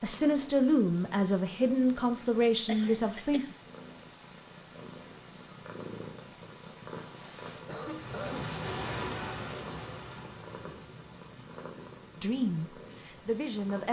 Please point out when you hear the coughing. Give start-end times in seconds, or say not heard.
2.6-3.5, 7.6-8.6.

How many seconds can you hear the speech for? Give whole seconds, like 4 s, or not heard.
5 s.